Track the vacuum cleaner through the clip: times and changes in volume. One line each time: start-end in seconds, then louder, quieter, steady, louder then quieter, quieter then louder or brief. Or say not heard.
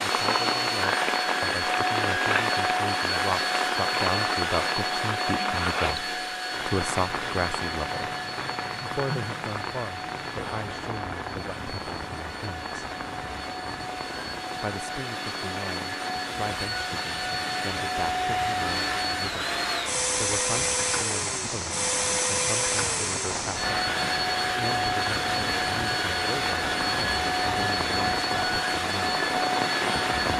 0.0-30.3 quieter then louder.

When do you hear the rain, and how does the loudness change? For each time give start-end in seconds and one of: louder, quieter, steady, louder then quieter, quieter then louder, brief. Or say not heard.
0.0-30.3 quieter then louder.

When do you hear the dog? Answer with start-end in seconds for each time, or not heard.
not heard.